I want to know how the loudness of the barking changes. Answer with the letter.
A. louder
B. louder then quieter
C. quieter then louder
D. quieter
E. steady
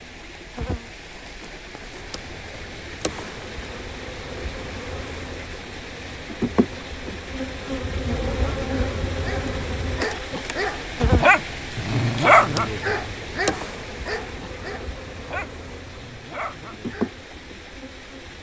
B.